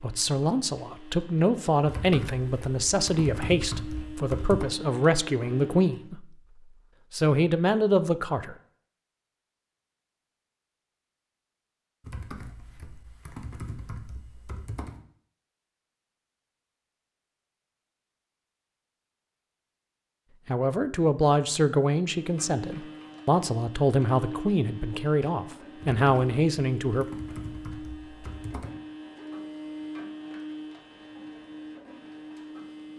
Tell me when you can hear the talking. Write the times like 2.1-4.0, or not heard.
0.0-6.2, 7.1-8.6, 20.4-27.1.